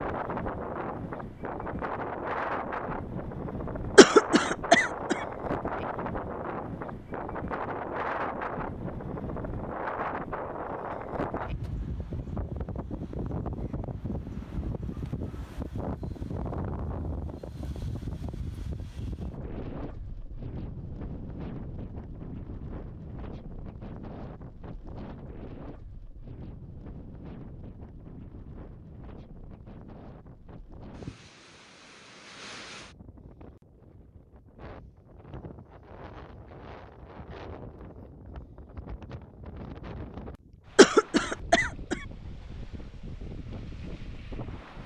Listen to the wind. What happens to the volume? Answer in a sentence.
The loudness of the wind goes down.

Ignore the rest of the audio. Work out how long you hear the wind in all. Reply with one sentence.
You can hear the wind for 45 seconds altogether.